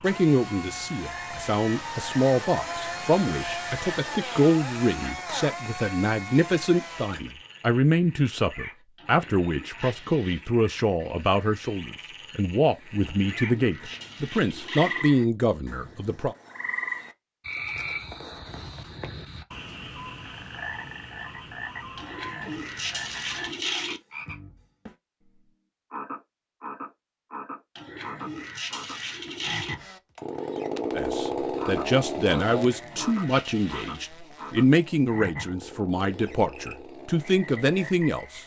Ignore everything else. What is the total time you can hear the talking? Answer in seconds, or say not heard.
24 s.